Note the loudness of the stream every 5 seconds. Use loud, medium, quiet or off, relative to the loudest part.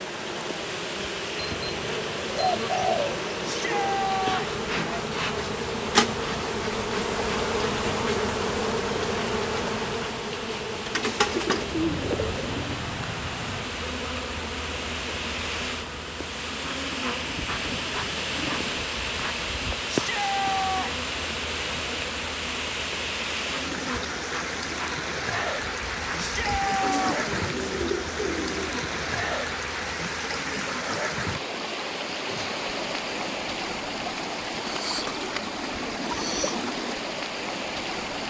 medium, off, medium, loud, loud, loud, loud, loud.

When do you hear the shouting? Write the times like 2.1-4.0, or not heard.
3.5-4.5, 19.9-20.9, 26.1-27.2.